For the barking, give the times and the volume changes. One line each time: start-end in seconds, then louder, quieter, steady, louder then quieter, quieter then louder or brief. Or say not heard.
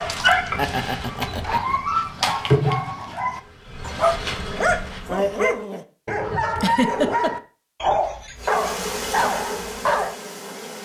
0.0-10.2 steady.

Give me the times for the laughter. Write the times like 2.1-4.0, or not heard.
0.6-2.4, 6.5-7.3.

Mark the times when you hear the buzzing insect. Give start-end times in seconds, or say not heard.
0.0-5.5, 8.3-10.7.